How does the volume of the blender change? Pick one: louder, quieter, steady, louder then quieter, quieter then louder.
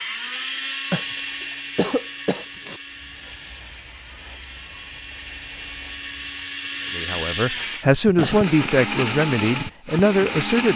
quieter then louder.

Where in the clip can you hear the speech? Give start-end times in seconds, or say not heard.
7.0-10.7.